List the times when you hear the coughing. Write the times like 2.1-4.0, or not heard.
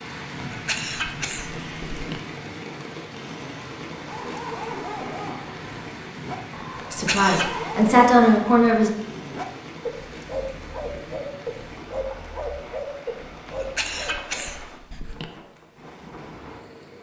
0.5-2.2, 6.8-7.5, 13.4-15.2.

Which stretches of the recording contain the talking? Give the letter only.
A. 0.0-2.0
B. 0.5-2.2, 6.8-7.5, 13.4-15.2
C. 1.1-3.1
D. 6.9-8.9
D.